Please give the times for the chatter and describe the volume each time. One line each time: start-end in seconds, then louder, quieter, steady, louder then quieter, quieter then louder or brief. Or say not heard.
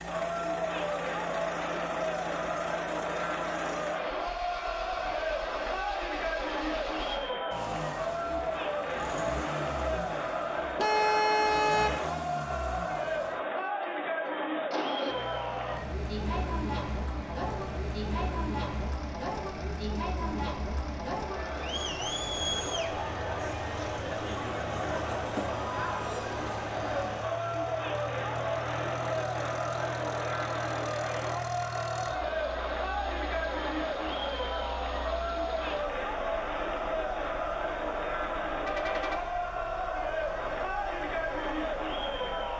0.0-42.5 steady.